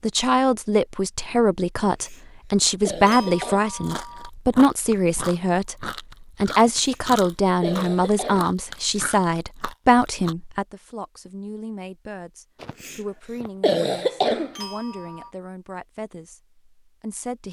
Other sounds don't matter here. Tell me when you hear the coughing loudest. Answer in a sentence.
The volume of the coughing peaks at 14 seconds.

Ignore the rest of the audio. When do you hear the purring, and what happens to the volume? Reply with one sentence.
The purring can't be heard in this clip.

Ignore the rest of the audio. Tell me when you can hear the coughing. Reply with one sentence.
You can hear the coughing from 1.9 to 3.6 s, from 6.6 to 8.4 s and from 12.6 to 14.6 s.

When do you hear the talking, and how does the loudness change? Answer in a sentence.
The talking can be heard from 0.0 to 17.4 s, getting quieter.